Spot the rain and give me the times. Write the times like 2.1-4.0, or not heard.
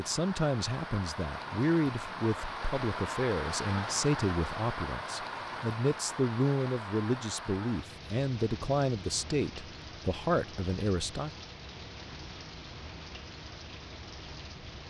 0.0-14.8.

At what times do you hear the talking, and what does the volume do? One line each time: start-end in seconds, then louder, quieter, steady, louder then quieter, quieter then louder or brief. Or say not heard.
0.0-11.3 steady.